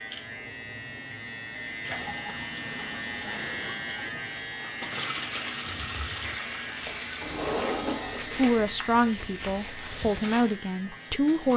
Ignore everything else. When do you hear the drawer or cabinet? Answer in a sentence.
The drawer or cabinet can be heard from 7.2 to 8.6 s.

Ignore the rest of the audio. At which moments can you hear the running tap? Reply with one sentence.
The running tap can be heard from 1.8 to 7.8 s and from 9.8 to 11.5 s.